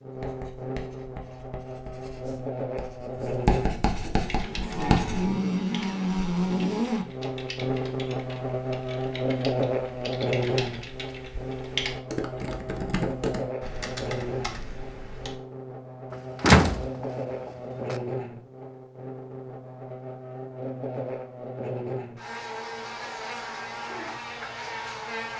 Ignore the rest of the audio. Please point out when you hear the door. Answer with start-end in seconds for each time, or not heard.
16.4-17.9.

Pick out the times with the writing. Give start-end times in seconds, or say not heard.
0.1-5.3.